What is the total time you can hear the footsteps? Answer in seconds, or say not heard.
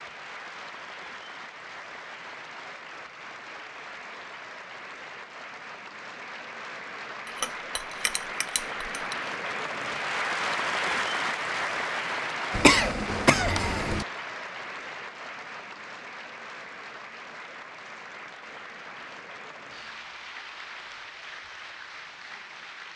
not heard.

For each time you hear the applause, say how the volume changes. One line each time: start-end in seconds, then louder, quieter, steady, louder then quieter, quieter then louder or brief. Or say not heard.
0.0-22.9 louder then quieter.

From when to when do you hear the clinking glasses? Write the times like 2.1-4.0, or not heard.
7.2-9.2.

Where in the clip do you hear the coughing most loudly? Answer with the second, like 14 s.
13 s.